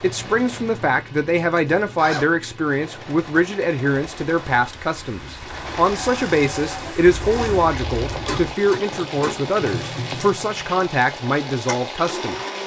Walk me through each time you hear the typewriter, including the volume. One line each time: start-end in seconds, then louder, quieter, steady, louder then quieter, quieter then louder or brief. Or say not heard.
not heard.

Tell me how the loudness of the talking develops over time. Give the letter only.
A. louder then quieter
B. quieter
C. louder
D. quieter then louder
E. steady
E.